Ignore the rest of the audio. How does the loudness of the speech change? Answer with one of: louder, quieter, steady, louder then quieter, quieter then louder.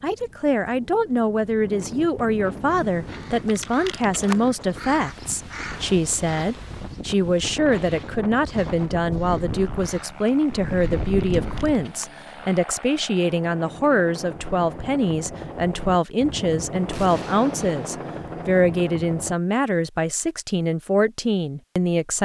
steady.